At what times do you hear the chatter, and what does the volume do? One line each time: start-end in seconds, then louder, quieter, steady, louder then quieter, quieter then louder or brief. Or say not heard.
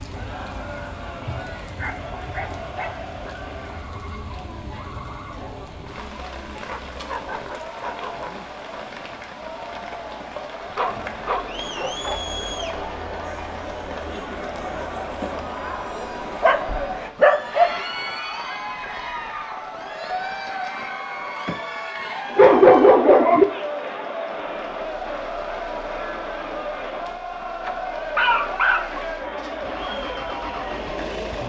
0.1-31.4 louder.